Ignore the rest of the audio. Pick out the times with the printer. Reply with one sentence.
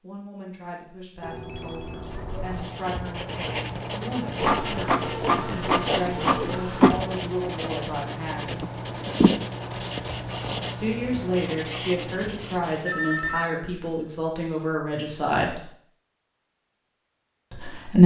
The printer can be heard from 4.4 to 7.0 s.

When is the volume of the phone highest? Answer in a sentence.
The loudest moment of the phone is at 13 seconds.